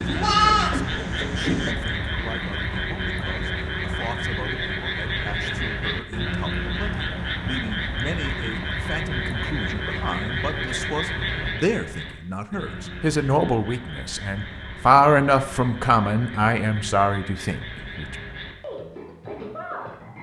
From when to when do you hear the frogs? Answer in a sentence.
You can hear the frogs from 0.0 to 20.1 s.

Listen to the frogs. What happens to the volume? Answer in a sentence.
The volume of the frogs goes down.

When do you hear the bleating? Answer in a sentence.
The bleating can be heard from 0.0 to 1.8 s.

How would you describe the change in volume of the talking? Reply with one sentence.
The loudness of the talking goes up.